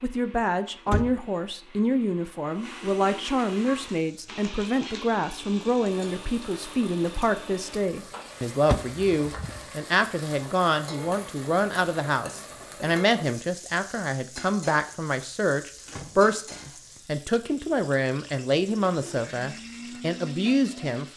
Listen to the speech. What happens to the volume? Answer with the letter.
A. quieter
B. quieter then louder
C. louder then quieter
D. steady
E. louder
D.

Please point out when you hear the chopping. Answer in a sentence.
The chopping can't be heard in this clip.